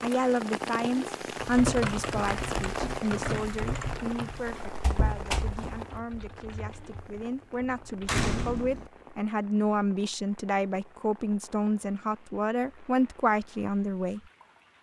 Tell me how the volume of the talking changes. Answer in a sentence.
The volume of the talking goes down, then up.